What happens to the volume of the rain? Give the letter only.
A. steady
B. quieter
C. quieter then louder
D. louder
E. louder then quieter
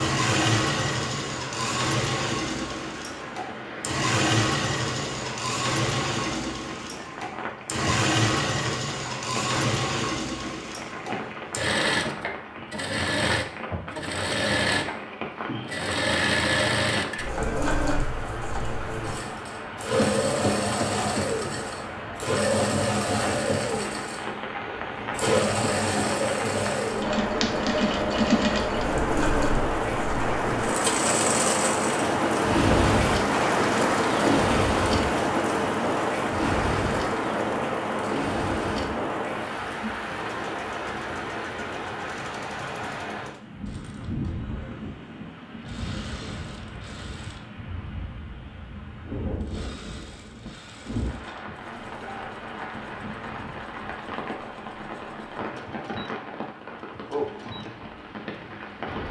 E.